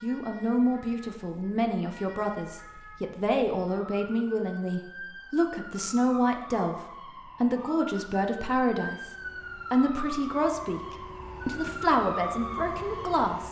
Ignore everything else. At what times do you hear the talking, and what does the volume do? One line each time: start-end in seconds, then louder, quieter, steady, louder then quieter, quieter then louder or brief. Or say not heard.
0.0-13.4 steady.